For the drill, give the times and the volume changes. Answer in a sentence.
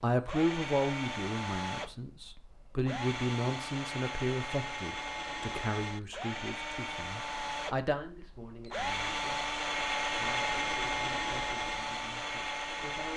The drill can be heard from 0.1 to 13.1 s, getting louder.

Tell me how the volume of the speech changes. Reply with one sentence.
The loudness of the speech goes down.